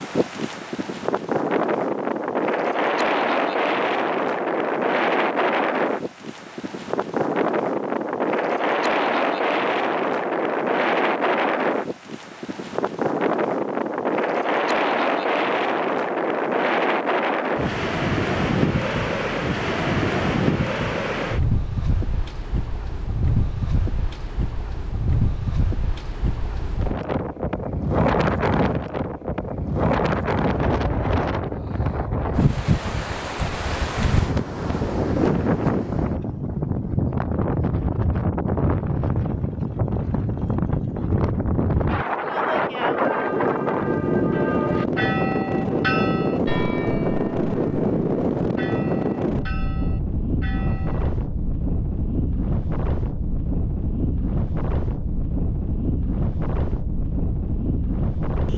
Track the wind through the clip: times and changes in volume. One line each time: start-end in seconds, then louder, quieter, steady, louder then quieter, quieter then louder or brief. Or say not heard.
0.0-58.5 steady.